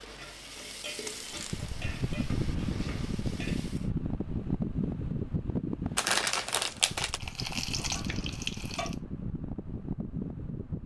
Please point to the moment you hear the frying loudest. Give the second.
8 s.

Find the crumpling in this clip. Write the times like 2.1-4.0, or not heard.
1.1-1.6, 6.0-7.2.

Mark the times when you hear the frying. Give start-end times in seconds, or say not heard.
0.0-3.9, 7.2-8.9.